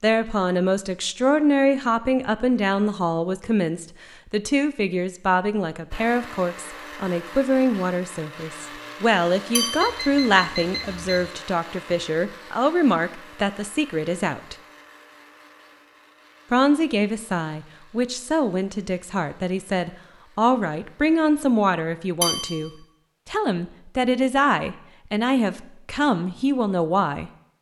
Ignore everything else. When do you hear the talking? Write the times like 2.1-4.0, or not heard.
0.0-14.6, 16.5-27.3.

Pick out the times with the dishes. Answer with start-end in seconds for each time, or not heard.
9.6-10.1, 22.2-22.7.